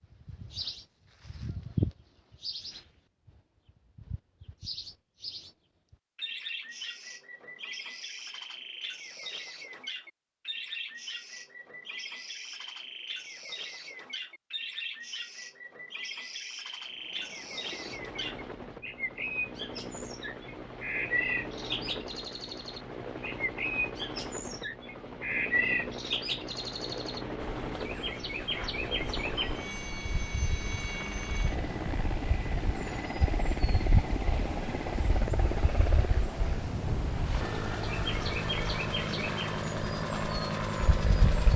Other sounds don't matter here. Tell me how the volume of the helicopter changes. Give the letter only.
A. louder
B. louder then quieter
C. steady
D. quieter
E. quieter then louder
A.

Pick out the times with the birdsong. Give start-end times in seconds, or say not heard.
0.0-41.5.